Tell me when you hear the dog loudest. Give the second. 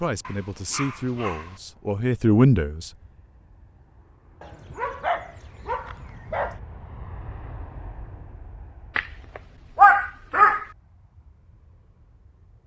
10 s.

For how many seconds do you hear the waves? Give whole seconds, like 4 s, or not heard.
not heard.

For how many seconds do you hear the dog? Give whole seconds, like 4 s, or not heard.
5 s.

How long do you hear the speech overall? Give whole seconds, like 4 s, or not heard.
3 s.